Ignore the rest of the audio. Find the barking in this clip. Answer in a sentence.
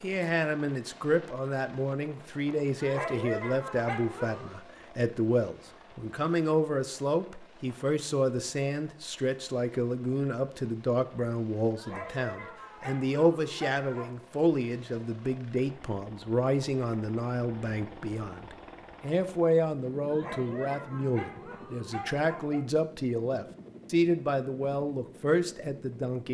You can hear the barking from 2.8 to 4.5 s, from 11.8 to 14.2 s and from 20.1 to 22.6 s.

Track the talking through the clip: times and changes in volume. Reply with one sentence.
You can hear the talking from 0.0 to 26.2 s, at a steady volume.